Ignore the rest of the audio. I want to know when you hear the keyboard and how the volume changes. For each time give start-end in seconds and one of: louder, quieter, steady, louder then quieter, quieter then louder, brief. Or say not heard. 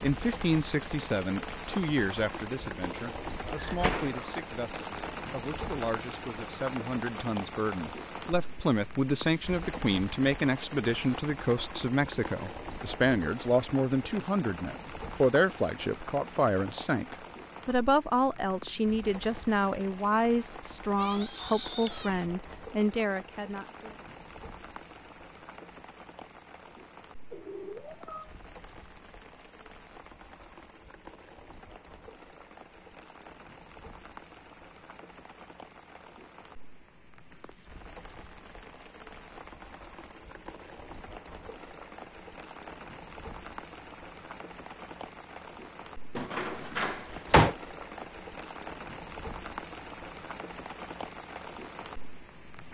not heard.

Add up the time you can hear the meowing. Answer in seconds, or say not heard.
2 s.